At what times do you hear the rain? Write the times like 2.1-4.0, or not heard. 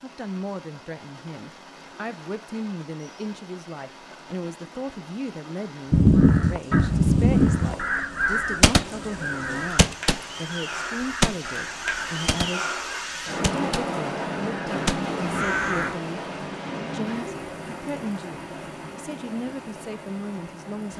0.0-20.9.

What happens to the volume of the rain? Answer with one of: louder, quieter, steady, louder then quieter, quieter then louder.
louder then quieter.